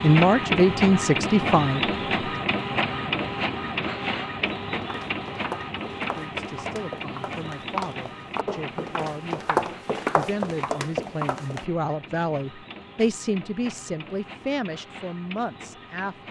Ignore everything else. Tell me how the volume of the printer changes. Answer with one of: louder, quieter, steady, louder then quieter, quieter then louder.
quieter.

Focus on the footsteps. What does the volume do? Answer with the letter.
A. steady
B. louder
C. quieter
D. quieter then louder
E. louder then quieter
B.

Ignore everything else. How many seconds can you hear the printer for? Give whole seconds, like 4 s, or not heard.
16 s.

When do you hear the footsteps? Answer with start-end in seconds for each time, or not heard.
4.4-11.7.